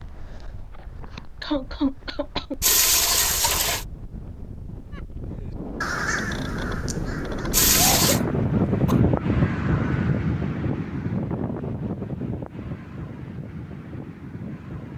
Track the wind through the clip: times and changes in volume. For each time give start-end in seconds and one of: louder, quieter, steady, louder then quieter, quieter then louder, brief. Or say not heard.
0.0-14.9 louder then quieter.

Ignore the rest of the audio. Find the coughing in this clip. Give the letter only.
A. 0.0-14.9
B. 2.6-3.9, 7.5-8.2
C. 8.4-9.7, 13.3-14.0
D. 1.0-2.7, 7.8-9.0
D.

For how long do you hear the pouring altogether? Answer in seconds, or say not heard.
2 s.